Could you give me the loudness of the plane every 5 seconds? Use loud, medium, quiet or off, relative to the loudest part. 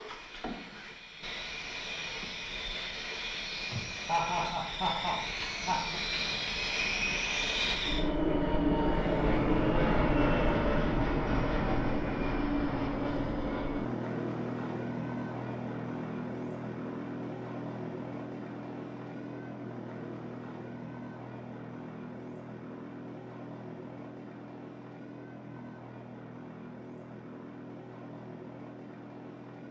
medium, loud, loud, medium, quiet, quiet.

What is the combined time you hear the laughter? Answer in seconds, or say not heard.
2 s.